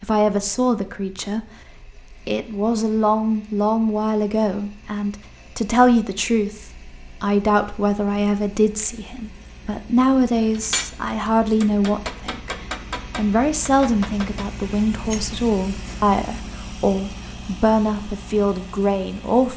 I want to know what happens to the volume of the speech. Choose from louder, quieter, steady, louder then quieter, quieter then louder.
steady.